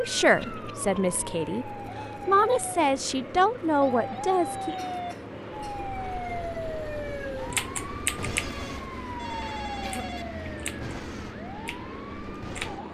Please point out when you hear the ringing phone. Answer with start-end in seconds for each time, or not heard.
8.3-10.2.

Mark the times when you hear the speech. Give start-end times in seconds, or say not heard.
0.0-4.9.